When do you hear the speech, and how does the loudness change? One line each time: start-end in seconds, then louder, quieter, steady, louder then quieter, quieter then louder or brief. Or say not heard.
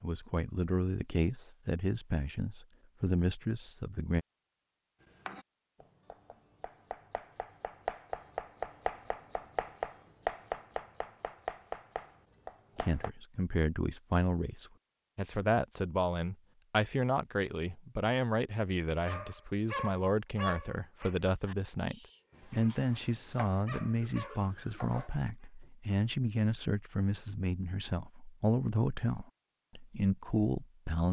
0.0-4.2 steady
12.8-31.0 steady.